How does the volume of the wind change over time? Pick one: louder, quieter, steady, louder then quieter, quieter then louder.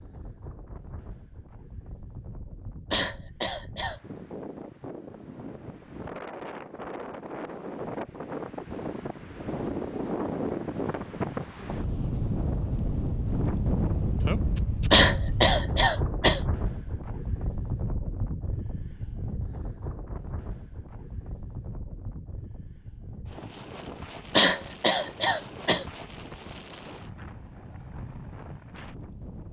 louder then quieter.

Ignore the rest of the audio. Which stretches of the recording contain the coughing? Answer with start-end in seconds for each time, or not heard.
2.9-4.0, 14.9-16.4, 24.4-25.9.